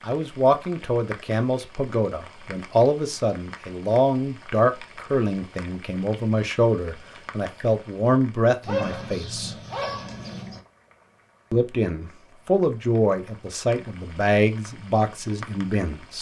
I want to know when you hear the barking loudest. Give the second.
9 s.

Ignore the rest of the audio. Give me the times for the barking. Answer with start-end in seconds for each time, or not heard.
8.6-10.6.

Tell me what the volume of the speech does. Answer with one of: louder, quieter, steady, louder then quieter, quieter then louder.
steady.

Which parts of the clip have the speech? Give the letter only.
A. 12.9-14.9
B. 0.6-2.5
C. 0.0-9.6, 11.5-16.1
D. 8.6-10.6
C.